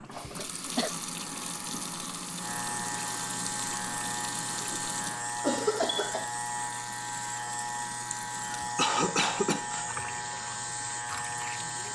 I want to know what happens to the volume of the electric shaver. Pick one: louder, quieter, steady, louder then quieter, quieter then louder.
louder.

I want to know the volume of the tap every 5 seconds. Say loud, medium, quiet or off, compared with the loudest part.
loud, medium, medium.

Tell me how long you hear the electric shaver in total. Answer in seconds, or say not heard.
12 s.